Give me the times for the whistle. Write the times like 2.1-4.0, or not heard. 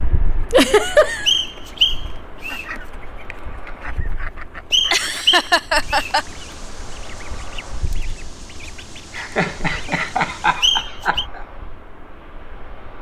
1.2-2.6, 4.7-6.1, 10.6-11.2.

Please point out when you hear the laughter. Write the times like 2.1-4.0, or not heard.
0.5-1.3, 4.9-6.2, 9.2-11.4.